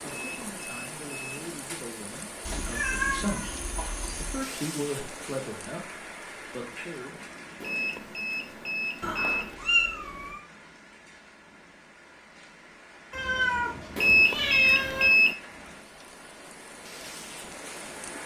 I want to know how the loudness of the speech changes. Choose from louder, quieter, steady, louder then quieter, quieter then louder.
louder then quieter.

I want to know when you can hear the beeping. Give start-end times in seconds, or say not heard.
0.1-1.5, 7.6-9.6, 13.9-15.3.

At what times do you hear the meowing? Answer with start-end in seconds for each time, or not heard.
2.5-4.4, 9.0-10.4, 13.1-15.1.